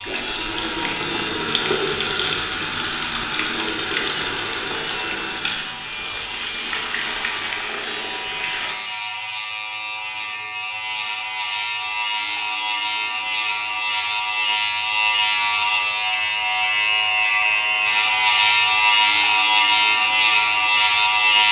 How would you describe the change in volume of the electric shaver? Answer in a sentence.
The volume of the electric shaver goes up.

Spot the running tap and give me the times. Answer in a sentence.
The running tap can be heard from 0.0 to 8.8 s.